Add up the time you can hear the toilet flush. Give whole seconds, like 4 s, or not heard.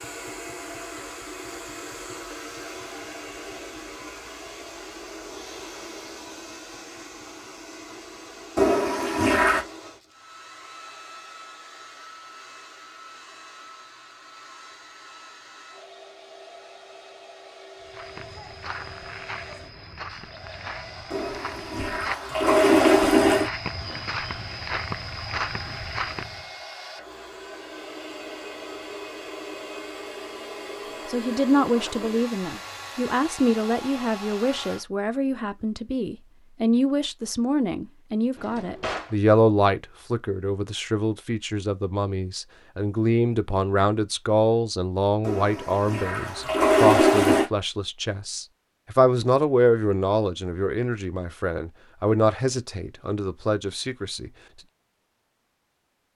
6 s.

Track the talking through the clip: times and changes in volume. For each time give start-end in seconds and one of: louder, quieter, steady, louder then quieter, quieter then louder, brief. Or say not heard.
31.1-54.3 steady.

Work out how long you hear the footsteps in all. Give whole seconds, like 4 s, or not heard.
9 s.